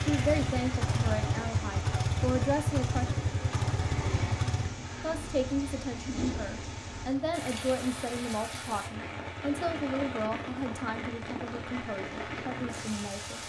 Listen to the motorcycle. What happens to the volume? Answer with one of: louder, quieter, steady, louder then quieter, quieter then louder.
quieter.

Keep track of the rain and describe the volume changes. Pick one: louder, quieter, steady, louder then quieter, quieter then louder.
steady.